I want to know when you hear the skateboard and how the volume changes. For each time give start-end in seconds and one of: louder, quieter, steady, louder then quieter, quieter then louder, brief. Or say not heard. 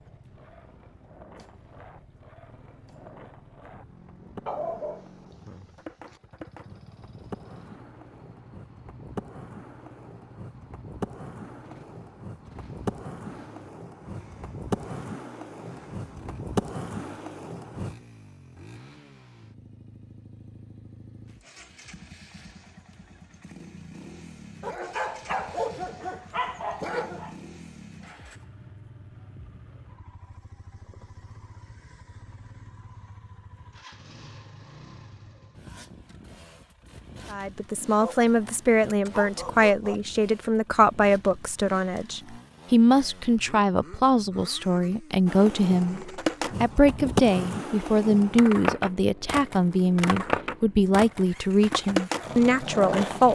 0.0-17.9 louder
45.2-53.2 steady.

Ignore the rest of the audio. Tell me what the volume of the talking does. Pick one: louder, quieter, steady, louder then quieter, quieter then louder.
steady.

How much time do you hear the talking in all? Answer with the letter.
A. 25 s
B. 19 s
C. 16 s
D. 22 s
C.